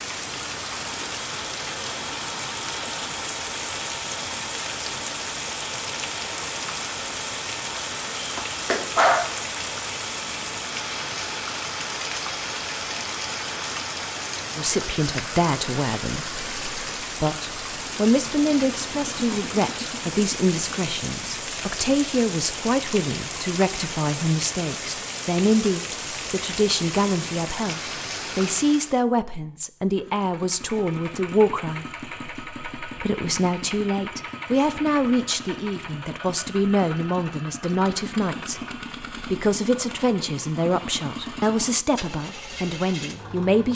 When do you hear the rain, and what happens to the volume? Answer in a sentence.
The rain can be heard from 0.0 to 29.1 s, at a steady volume.